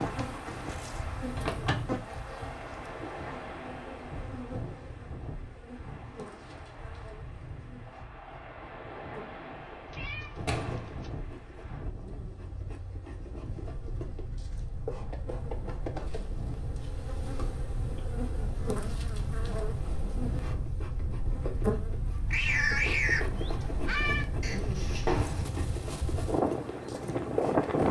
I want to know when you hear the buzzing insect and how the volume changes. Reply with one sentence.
You can hear the buzzing insect from 0.0 to 27.8 s, getting quieter then louder.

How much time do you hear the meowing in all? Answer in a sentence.
You can hear the meowing for 4 seconds altogether.